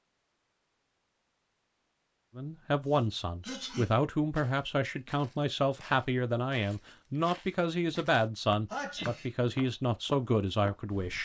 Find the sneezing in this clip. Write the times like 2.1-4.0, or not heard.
2.9-3.9, 8.7-9.2.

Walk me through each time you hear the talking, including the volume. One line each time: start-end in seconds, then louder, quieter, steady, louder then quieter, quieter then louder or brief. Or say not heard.
2.4-11.2 steady.